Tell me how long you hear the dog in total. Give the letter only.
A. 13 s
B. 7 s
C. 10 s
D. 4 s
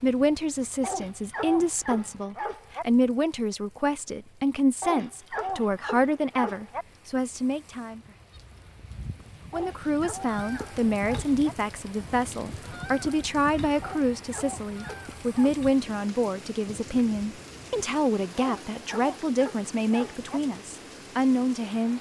C.